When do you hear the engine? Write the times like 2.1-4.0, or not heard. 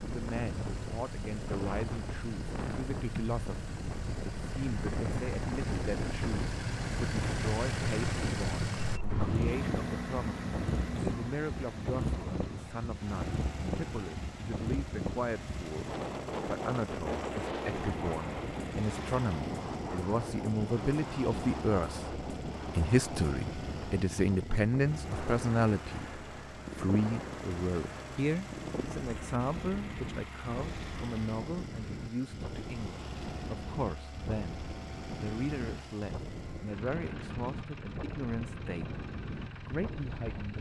0.0-40.5.